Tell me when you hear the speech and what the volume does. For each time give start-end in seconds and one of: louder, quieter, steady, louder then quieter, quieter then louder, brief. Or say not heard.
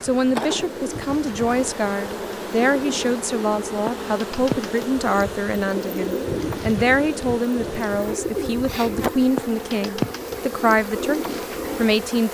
0.0-12.2 steady.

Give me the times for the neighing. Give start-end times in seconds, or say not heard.
not heard.